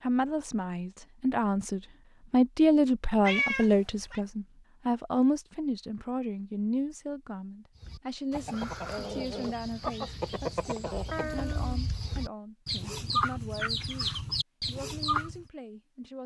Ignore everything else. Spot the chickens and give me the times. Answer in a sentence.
You can hear the chickens from 7.8 to 15.4 s.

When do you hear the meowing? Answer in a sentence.
The meowing can be heard from 3.2 to 4.2 s and from 11.1 to 11.8 s.